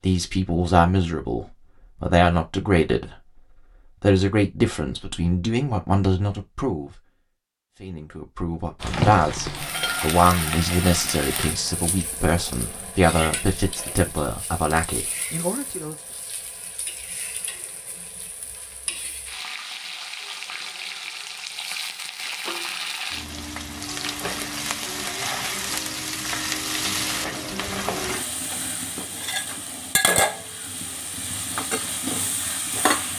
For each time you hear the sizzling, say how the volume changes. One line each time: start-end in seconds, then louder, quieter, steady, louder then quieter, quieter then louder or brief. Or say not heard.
8.8-33.1 quieter then louder.